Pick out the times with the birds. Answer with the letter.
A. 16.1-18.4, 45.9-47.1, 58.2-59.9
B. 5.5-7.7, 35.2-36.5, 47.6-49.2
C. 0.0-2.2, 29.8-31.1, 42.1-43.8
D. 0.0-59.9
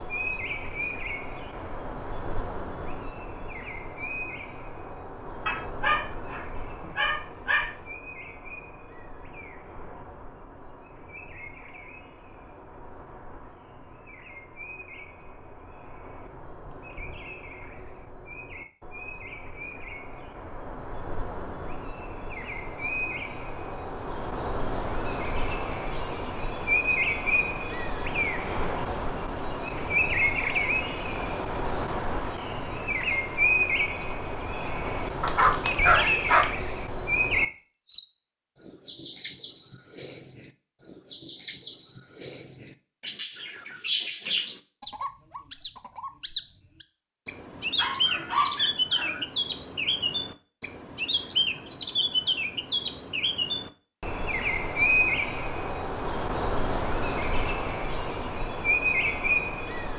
D.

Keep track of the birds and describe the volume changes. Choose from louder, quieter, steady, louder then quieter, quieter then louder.
louder.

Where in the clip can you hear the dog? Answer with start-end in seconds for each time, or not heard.
5.5-7.7, 35.2-36.5, 47.6-49.2.